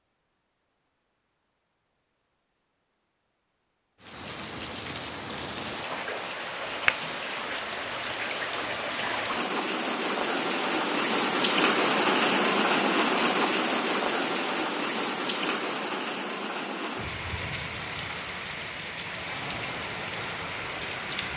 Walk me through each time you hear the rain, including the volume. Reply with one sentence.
You can hear the rain from 4.0 to 21.3 s, getting louder then quieter.